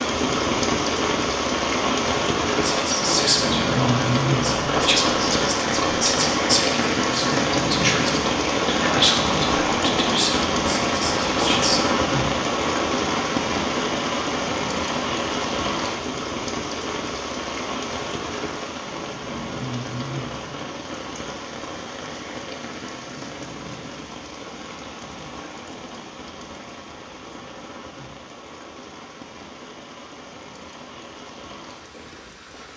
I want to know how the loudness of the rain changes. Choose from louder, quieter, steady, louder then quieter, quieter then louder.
quieter.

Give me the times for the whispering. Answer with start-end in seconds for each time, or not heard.
2.5-11.8.